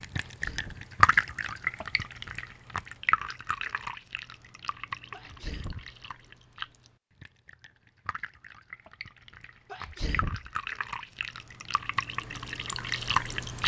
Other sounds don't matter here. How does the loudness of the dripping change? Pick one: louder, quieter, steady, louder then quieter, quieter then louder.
quieter then louder.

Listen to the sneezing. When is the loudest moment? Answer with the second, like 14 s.
10 s.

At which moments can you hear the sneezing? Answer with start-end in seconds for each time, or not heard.
0.1-0.9, 5.1-6.0, 9.7-10.5.